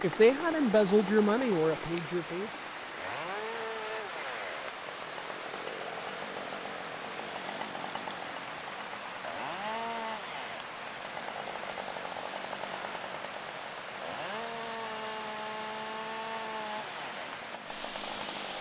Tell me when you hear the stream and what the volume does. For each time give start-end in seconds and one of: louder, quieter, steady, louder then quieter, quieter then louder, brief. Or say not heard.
0.0-18.5 steady.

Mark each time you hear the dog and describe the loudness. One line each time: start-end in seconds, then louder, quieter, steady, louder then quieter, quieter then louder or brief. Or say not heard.
not heard.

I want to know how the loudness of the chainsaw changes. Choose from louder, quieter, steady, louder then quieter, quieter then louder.
steady.